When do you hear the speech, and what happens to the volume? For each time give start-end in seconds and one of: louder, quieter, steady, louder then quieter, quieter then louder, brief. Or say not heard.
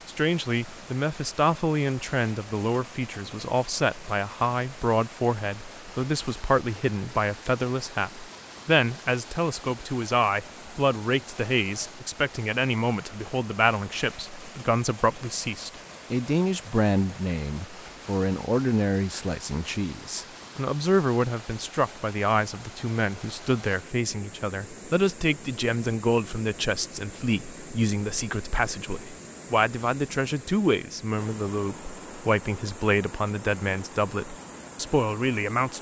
0.1-35.7 steady.